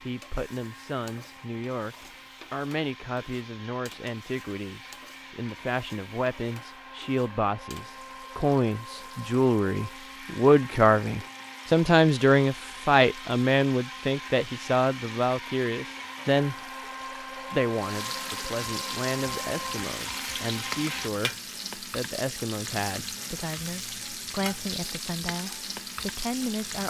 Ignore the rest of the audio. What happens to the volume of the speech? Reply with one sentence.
The loudness of the speech goes up, then down.